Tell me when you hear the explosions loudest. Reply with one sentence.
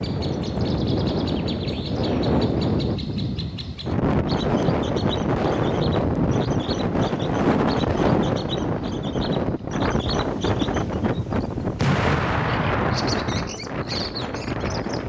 The loudest moment of the explosions is at 12 seconds.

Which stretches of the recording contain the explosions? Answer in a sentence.
You can hear the explosions from 11.8 to 13.3 s.